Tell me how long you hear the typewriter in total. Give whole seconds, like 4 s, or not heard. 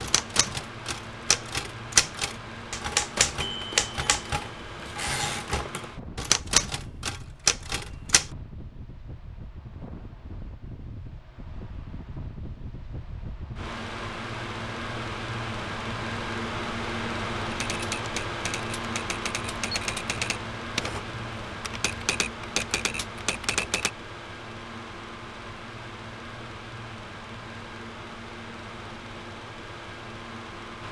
15 s.